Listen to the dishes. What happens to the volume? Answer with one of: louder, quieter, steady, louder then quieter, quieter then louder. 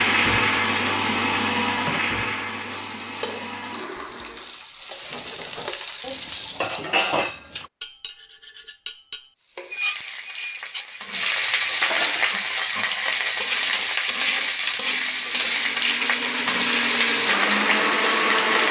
louder then quieter.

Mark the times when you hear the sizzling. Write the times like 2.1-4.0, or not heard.
0.0-7.0, 9.4-18.6.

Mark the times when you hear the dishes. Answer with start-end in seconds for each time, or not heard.
5.0-13.0.